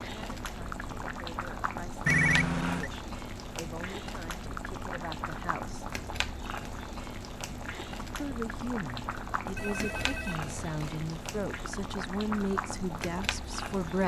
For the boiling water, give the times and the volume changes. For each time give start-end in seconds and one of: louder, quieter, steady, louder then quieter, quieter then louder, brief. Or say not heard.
0.0-14.0 steady.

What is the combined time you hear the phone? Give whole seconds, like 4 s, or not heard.
2 s.